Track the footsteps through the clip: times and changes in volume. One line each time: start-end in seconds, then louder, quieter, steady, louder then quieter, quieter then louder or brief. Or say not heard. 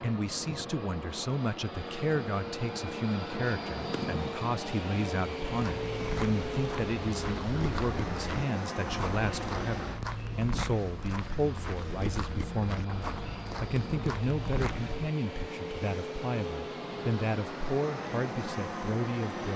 5.7-15.1 steady.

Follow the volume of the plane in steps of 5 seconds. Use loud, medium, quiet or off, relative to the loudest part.
loud, loud, medium, loud.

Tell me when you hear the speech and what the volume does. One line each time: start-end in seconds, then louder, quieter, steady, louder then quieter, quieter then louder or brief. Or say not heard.
0.0-19.5 steady.